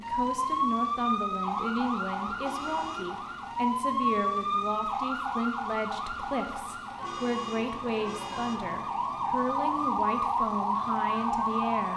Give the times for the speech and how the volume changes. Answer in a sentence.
The speech can be heard from 0.0 to 11.9 s, at a steady volume.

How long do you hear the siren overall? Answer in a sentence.
The siren can be heard for 12 seconds in total.